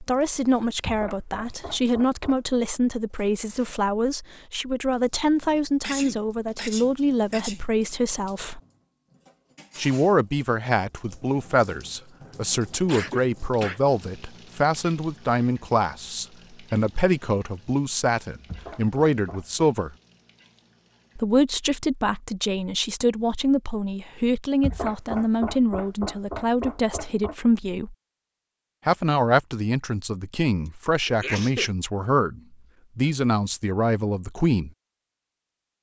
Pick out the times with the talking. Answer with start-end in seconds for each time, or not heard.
0.0-8.6, 9.8-19.9, 21.1-27.9, 28.9-34.7.